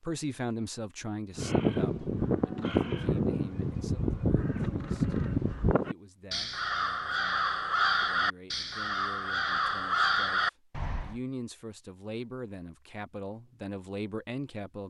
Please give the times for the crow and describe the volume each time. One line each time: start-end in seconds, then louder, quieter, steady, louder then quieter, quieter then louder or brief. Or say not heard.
1.4-11.2 steady.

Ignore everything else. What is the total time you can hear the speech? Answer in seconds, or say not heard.
14 s.